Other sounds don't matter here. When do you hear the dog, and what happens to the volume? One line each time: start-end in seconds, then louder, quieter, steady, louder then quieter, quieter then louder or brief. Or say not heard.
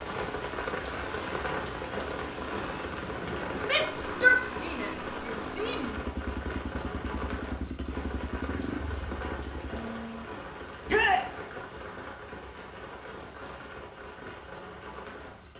not heard.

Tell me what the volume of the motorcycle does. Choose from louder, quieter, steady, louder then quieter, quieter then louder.
steady.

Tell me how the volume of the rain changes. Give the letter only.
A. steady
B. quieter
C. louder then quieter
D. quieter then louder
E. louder
B.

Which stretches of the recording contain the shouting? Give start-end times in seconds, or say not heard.
3.6-6.0, 10.8-11.3.